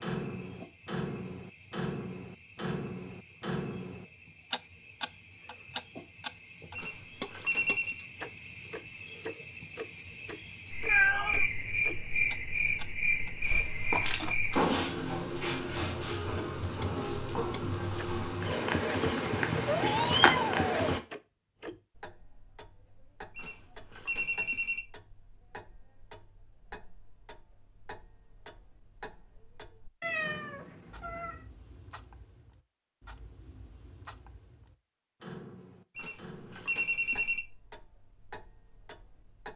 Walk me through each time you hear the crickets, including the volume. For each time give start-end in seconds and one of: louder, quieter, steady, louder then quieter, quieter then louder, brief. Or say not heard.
0.0-21.0 louder.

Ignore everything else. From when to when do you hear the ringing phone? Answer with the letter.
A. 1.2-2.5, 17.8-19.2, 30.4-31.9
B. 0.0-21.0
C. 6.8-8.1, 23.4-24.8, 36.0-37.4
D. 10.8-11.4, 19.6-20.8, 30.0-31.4
C.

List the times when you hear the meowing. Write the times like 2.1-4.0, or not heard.
10.8-11.4, 19.6-20.8, 30.0-31.4.